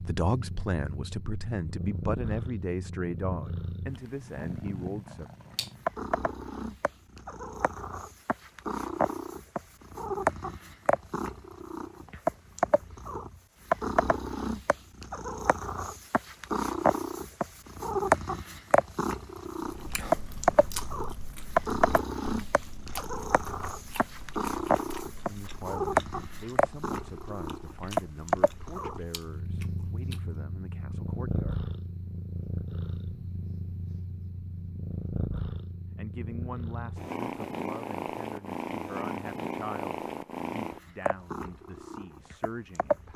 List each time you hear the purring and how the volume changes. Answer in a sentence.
The purring can be heard from 0.0 to 43.1 s, getting louder then quieter.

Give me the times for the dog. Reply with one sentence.
You can't hear the dog here.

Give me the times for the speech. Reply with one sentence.
You can hear the speech from 0.0 to 5.3 s, from 25.2 to 31.6 s and from 36.0 to 43.1 s.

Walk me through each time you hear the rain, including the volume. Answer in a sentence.
The rain can't be heard in this clip.